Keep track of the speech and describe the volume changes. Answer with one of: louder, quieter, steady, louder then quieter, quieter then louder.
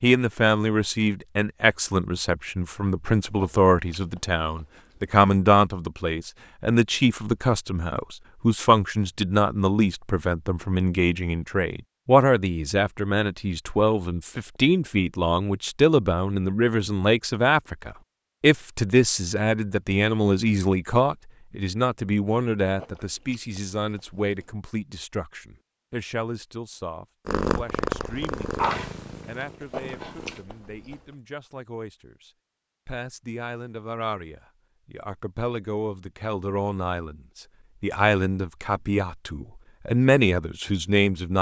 quieter then louder.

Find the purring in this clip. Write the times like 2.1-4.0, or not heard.
27.2-30.4.